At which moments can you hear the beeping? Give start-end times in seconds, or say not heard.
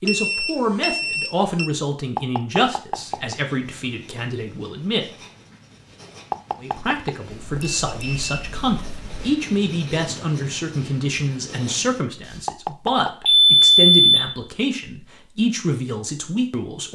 0.1-1.7, 7.3-9.3, 13.2-14.3.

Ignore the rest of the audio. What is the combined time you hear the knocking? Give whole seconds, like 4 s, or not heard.
3 s.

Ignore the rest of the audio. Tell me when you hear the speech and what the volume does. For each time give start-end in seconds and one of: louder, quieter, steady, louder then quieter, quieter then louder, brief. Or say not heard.
0.0-5.0 quieter
6.6-16.8 steady.